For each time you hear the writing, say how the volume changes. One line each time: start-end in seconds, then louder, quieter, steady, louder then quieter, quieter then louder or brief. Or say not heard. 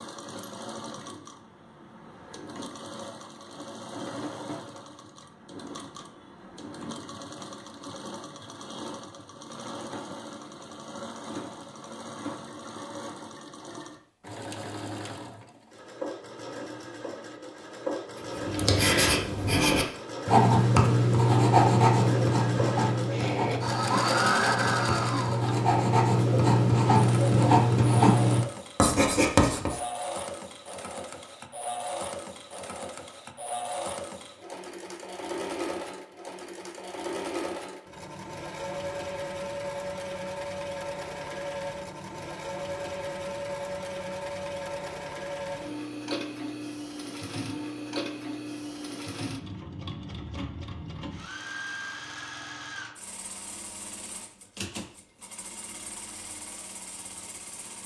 18.4-29.8 quieter then louder.